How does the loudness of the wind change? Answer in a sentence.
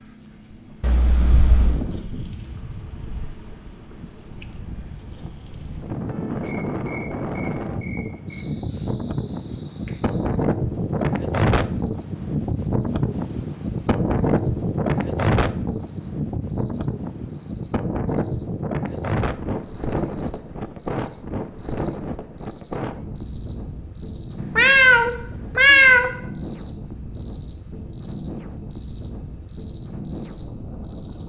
The loudness of the wind goes up, then down.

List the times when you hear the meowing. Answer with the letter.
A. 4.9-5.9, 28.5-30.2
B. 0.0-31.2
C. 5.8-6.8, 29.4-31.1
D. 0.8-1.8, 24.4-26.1
D.